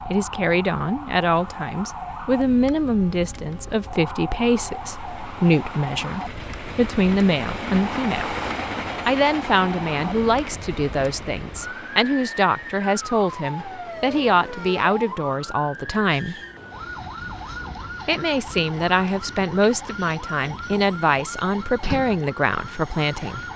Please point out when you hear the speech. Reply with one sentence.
You can hear the speech from 0.1 to 8.3 s, from 9.1 to 16.4 s and from 18.1 to 23.5 s.